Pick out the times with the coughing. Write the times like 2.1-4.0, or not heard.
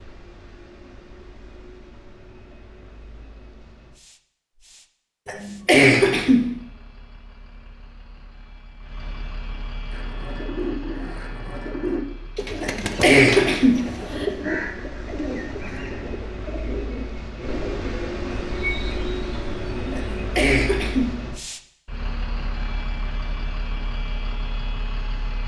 5.2-6.5, 12.6-14.2, 19.9-21.1.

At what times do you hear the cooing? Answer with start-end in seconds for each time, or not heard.
9.9-20.2.